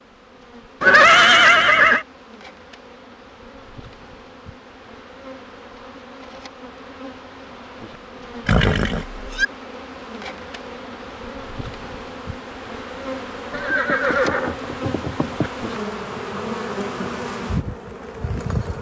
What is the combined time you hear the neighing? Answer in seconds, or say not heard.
4 s.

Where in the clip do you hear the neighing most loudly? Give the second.
1 s.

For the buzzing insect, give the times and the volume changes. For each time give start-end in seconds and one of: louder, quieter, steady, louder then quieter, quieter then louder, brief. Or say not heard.
0.0-18.7 louder.